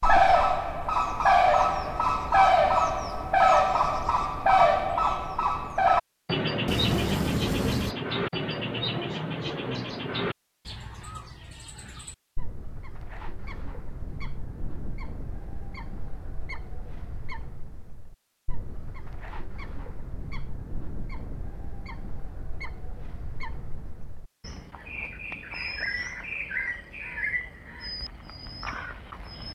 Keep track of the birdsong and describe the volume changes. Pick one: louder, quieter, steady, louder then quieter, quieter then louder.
quieter then louder.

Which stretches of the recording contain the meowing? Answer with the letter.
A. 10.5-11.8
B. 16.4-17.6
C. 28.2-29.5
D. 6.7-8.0
D.